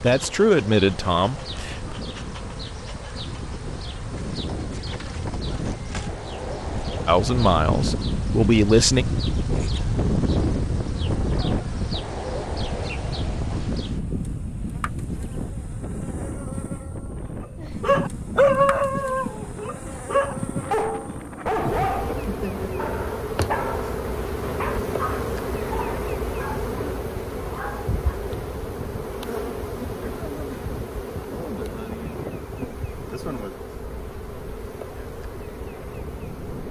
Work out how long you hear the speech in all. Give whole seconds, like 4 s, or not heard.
4 s.